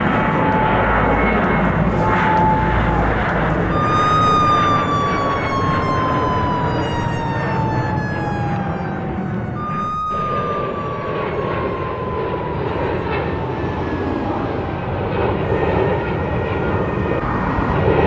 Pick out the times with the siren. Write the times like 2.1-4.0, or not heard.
0.0-18.0.